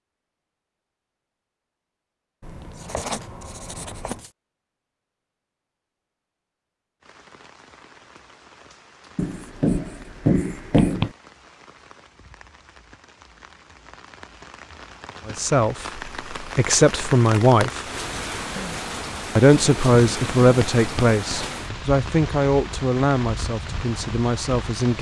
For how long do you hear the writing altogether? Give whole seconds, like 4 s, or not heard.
6 s.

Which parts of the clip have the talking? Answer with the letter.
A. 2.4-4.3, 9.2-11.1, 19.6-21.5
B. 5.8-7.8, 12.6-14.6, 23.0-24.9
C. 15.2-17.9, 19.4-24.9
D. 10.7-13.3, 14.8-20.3
C.